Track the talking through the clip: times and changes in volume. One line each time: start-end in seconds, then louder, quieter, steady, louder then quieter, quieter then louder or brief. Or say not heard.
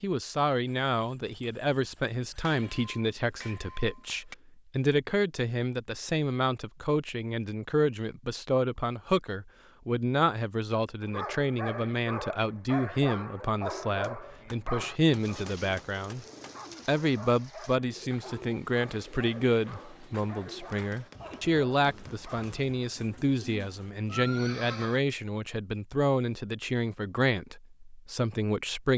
0.0-16.2 steady
16.9-28.9 steady.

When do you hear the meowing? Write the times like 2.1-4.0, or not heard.
not heard.